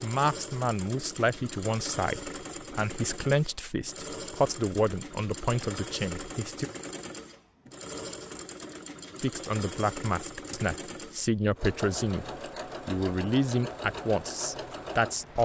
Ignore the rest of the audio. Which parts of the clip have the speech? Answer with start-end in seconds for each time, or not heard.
0.0-6.7, 9.2-15.4.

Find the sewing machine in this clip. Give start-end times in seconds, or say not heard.
0.0-15.4.